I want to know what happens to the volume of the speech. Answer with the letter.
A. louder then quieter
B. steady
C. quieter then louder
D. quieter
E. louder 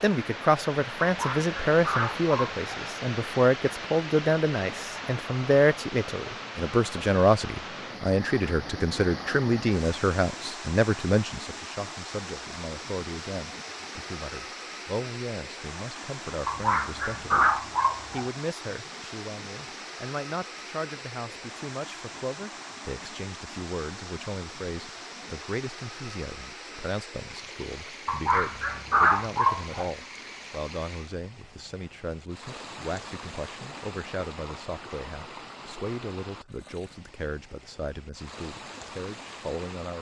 D.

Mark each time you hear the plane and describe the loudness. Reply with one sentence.
The plane can't be heard in this clip.